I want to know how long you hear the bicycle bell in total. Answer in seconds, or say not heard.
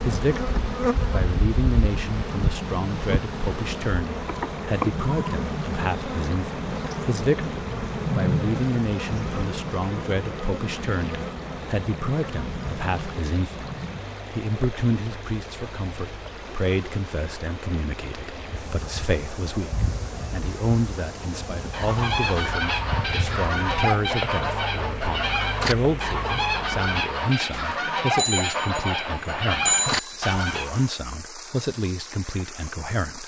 2 s.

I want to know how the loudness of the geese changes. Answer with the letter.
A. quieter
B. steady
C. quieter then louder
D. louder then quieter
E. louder
B.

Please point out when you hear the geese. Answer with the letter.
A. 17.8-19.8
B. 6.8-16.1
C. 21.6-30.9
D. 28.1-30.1
C.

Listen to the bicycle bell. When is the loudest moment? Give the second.
30 s.